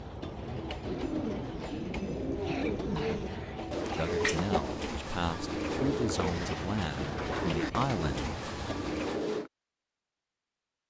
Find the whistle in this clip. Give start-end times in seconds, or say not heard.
not heard.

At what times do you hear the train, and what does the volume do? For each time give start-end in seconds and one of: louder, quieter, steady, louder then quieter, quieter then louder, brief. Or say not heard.
0.0-9.1 steady.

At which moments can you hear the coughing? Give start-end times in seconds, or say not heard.
2.4-4.2.